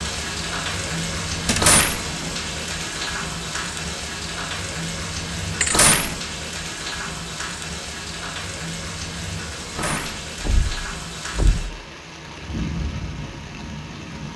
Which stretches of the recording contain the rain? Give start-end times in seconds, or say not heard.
0.0-14.3.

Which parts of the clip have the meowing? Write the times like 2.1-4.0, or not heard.
1.6-2.0, 5.7-6.2, 9.8-10.2.